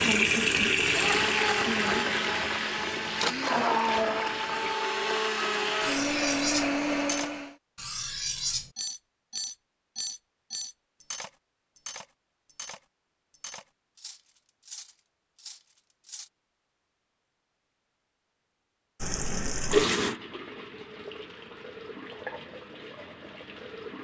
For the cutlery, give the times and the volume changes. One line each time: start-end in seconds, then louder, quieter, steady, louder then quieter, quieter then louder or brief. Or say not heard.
5.8-16.3 quieter.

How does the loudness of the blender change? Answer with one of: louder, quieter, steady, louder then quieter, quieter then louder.
steady.